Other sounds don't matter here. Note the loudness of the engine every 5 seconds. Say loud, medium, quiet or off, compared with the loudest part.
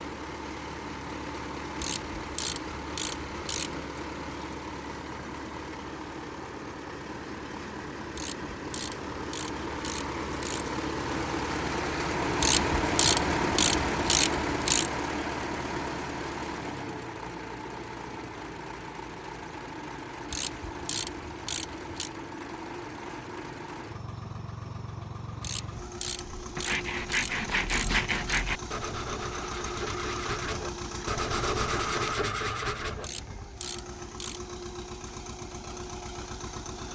medium, medium, loud, medium, medium, medium, medium, medium.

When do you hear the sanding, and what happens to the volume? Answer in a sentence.
You can hear the sanding from 26.4 to 33.1 s, getting quieter then louder.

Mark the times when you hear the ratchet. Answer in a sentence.
The ratchet can be heard from 1.8 to 3.9 s, from 8.2 to 10.8 s, from 12.4 to 14.9 s, from 20.3 to 22.1 s, from 25.4 to 28.4 s and from 33.0 to 34.5 s.